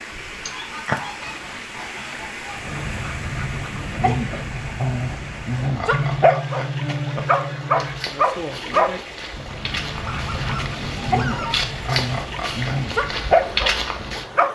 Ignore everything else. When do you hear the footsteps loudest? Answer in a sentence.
The loudest moment of the footsteps is at 14 seconds.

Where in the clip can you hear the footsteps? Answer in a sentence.
You can hear the footsteps from 7.8 to 14.2 s.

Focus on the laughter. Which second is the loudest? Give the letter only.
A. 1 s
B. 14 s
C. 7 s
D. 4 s
A.